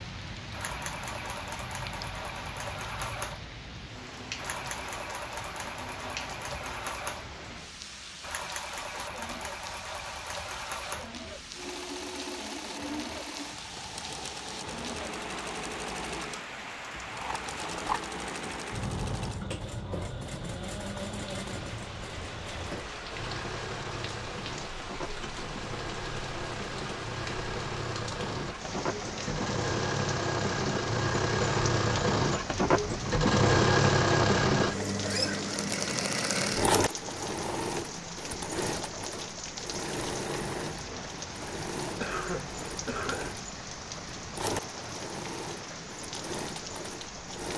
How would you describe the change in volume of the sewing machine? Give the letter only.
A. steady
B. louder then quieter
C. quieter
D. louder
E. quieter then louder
B.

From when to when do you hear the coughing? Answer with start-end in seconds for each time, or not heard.
42.0-43.4.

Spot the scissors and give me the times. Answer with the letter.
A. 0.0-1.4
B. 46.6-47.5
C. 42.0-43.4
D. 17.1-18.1
D.